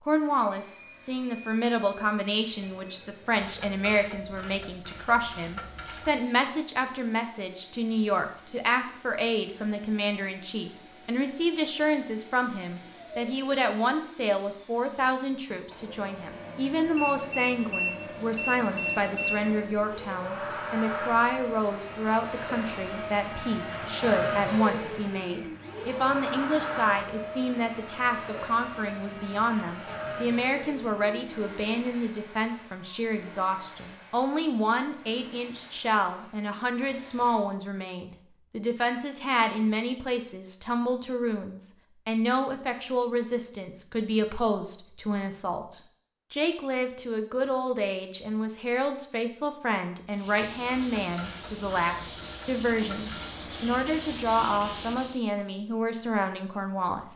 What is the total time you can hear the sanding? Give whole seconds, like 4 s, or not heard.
5 s.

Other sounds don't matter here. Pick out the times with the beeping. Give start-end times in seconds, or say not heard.
16.9-19.4.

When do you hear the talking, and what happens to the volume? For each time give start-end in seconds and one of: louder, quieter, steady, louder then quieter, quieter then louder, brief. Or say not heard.
0.1-57.1 steady.